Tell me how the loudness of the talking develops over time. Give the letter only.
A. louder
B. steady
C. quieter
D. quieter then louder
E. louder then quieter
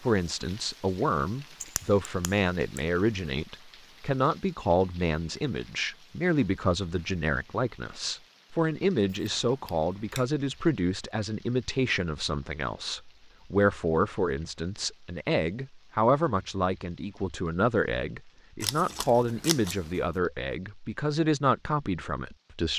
B.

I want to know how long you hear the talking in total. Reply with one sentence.
You can hear the talking for 23 seconds altogether.